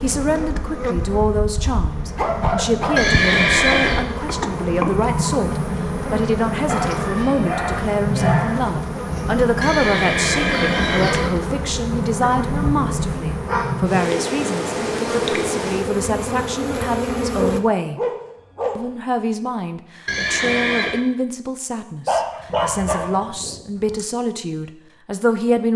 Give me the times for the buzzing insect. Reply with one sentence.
The buzzing insect can be heard from 0.0 to 17.6 s.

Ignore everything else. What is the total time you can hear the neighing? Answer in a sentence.
The neighing can be heard for 4 seconds in total.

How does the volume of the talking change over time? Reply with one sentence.
The loudness of the talking stays about the same.